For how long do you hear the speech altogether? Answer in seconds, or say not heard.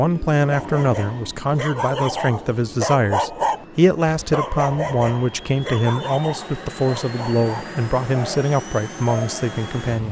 10 s.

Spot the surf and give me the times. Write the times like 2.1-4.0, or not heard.
not heard.